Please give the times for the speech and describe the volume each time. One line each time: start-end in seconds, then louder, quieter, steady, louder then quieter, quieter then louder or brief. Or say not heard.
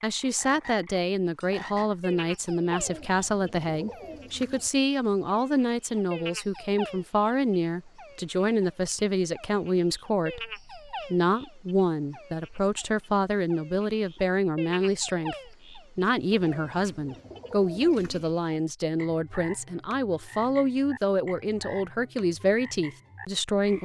0.0-23.7 steady.